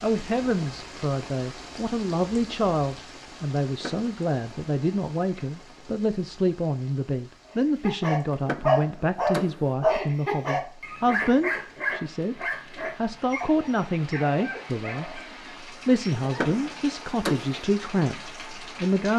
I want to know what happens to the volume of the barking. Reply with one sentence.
The volume of the barking goes down.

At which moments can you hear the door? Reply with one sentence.
You can hear the door from 3.6 to 4.1 s, from 8.3 to 9.7 s and from 16.2 to 17.6 s.